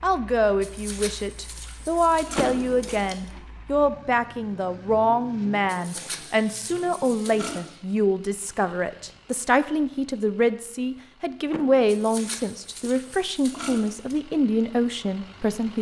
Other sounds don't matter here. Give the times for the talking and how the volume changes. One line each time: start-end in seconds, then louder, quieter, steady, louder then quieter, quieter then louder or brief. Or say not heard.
0.0-15.7 steady.